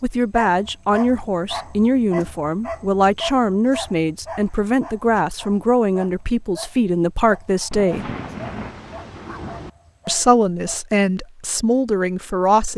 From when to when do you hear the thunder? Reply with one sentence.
You can hear the thunder from 7.7 to 9.7 s.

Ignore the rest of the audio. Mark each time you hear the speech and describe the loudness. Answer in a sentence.
You can hear the speech from 0.0 to 8.1 s, at a steady volume; and briefly from 10.1 to 12.7 s.